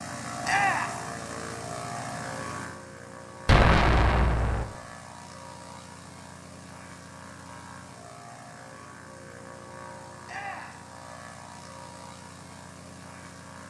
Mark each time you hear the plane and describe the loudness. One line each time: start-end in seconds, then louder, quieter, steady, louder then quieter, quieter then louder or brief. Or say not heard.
0.0-13.6 quieter.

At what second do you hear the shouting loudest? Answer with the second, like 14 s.
1 s.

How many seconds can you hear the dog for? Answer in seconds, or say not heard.
not heard.